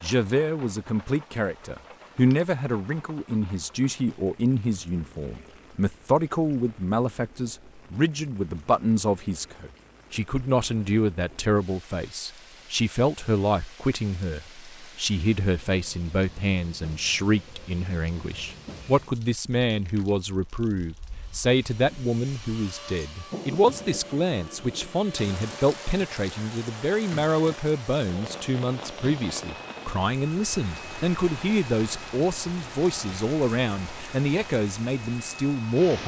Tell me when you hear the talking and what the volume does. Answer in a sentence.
You can hear the talking from 0.0 to 36.0 s, at a steady volume.